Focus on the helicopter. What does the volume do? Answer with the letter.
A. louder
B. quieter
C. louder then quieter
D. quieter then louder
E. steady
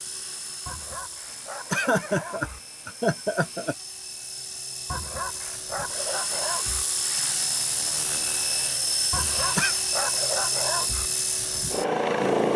A.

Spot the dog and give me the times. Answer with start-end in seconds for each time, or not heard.
0.7-2.6, 4.8-6.8, 9.1-11.1.